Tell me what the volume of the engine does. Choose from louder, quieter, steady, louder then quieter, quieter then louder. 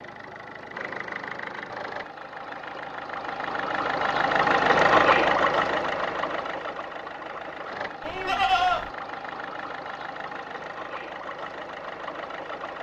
louder then quieter.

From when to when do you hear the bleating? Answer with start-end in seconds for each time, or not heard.
8.0-8.9.